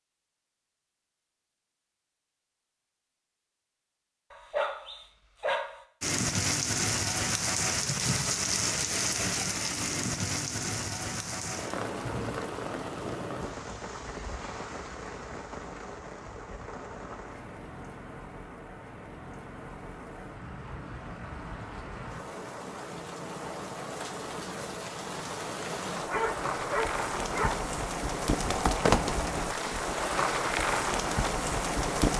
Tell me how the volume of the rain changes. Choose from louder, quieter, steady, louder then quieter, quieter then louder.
quieter then louder.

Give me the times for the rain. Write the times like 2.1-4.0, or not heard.
6.0-32.1.